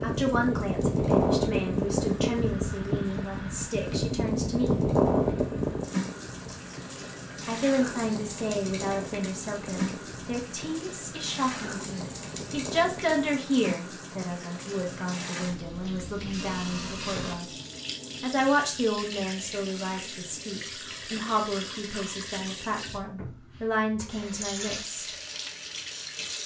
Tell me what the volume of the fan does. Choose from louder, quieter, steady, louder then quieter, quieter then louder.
quieter.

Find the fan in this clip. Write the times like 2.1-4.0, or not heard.
0.0-13.3.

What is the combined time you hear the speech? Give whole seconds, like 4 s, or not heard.
22 s.